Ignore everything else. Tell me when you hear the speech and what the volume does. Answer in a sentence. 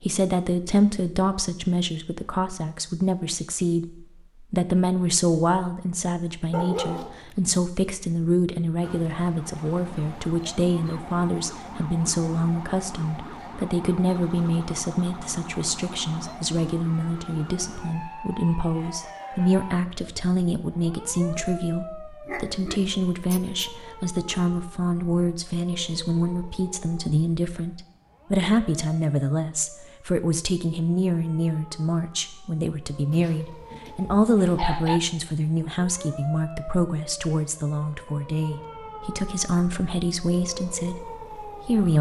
You can hear the speech from 0.0 to 41.9 s, at a steady volume.